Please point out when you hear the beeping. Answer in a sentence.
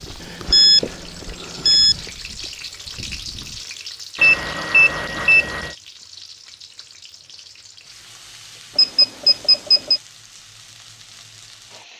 You can hear the beeping from 0.2 to 1.9 s, from 4.2 to 5.8 s and from 8.8 to 10.0 s.